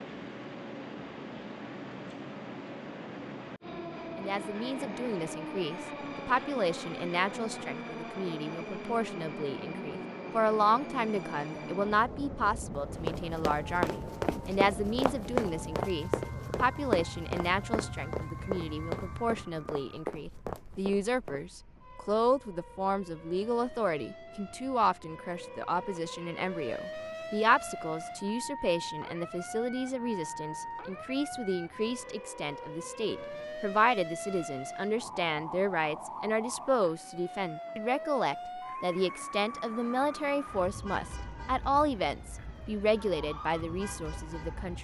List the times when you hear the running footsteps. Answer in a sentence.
You can hear the running footsteps from 13.1 to 21.4 s.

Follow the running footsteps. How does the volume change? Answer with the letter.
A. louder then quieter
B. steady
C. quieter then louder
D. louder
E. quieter
E.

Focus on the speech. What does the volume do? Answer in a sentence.
The loudness of the speech stays about the same.